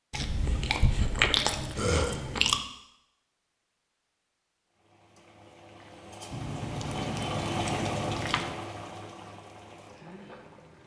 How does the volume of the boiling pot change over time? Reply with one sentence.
The loudness of the boiling pot goes up, then down.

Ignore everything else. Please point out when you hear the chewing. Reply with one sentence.
The chewing can be heard from 0.1 to 2.6 s and from 6.3 to 8.6 s.